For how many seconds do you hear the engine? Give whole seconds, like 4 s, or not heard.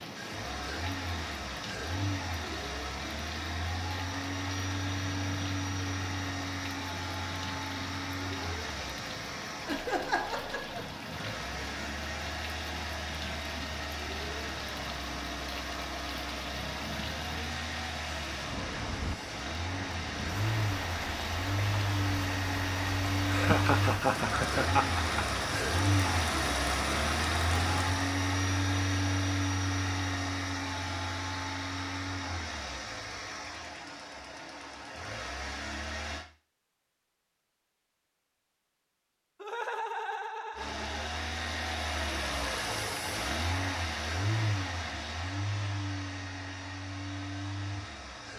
44 s.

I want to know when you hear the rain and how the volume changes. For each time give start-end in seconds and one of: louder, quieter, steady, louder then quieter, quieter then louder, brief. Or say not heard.
0.0-28.1 louder.